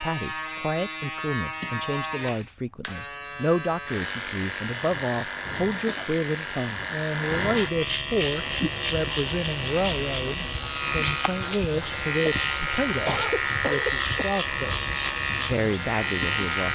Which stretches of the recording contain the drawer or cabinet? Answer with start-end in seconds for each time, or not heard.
not heard.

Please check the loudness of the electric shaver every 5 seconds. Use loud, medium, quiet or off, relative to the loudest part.
medium, loud, loud, loud.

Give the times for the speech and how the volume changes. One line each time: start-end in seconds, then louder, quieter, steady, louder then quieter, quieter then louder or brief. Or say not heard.
0.0-16.6 steady.